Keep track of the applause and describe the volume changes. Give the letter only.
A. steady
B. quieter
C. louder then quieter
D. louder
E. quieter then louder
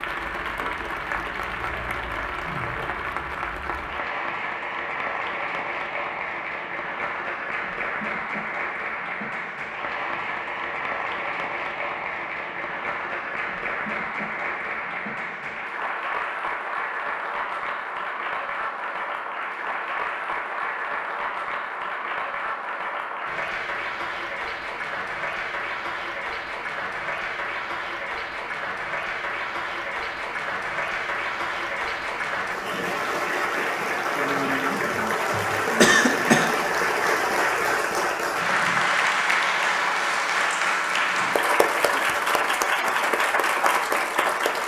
D.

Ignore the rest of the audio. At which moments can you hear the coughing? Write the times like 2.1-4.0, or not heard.
35.0-36.6.